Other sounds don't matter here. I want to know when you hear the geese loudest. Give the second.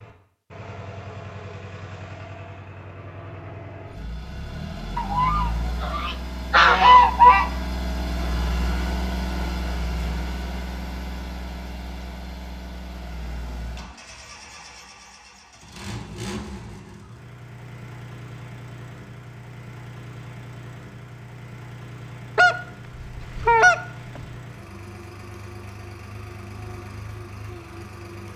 7 s.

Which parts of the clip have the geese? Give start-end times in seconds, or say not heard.
5.0-7.5, 22.4-24.2.